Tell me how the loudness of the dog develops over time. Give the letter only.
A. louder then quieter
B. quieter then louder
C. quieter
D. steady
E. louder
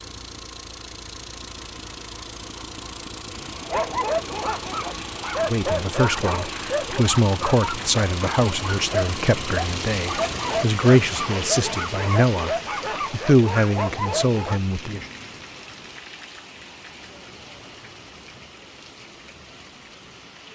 D.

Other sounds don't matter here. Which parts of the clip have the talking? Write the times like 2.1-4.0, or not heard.
5.4-15.1.